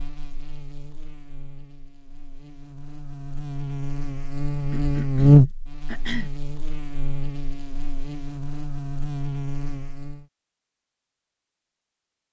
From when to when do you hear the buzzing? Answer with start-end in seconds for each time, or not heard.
0.0-10.2.